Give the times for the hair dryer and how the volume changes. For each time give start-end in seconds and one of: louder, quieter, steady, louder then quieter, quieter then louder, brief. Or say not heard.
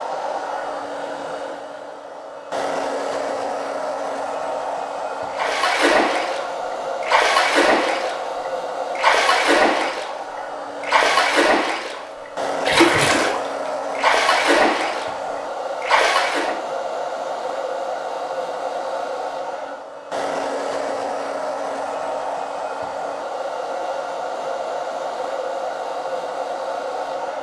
0.0-27.3 steady.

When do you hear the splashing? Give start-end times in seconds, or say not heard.
5.3-8.2, 8.9-10.2, 10.8-12.1, 12.7-15.2, 15.8-16.6.